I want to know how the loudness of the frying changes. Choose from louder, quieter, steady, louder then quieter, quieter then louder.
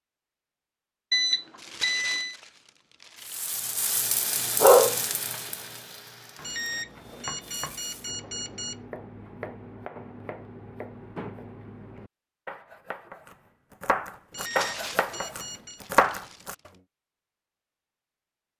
louder then quieter.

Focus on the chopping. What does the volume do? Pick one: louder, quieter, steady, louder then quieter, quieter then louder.
louder.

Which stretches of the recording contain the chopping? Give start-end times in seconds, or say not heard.
6.3-16.7.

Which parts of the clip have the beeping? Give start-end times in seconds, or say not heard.
1.1-2.4, 6.4-8.8, 14.3-15.8.